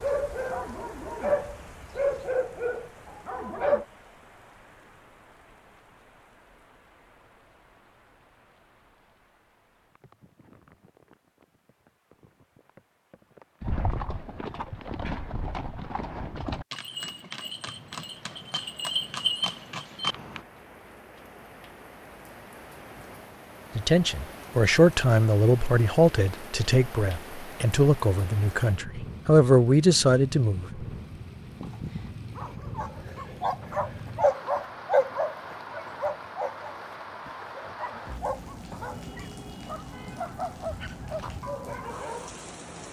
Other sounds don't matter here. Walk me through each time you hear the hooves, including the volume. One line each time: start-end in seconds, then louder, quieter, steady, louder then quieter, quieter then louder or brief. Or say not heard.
13.6-20.4 louder.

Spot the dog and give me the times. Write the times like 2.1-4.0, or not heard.
0.0-3.9, 31.6-42.3.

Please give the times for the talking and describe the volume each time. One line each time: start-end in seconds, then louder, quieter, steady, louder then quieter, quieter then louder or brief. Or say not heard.
23.8-30.9 quieter then louder.